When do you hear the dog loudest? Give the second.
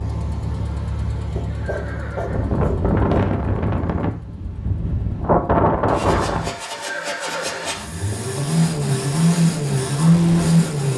3 s.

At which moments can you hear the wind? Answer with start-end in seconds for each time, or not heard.
0.1-6.5.